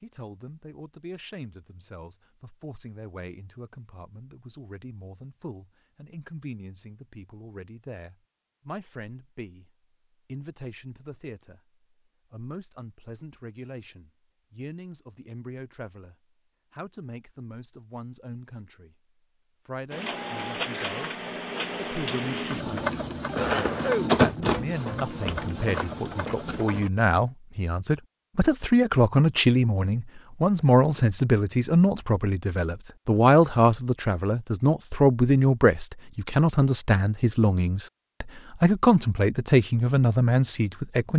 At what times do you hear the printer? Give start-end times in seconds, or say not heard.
19.9-26.9.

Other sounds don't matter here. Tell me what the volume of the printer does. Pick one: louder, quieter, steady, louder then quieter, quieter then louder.
louder then quieter.